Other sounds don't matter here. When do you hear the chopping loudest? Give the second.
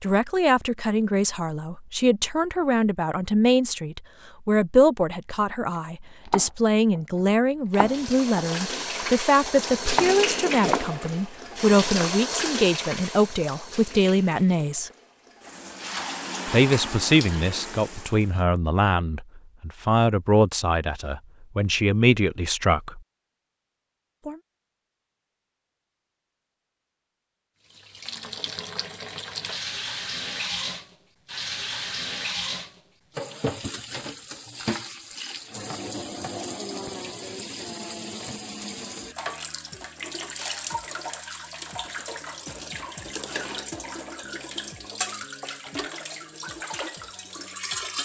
10 s.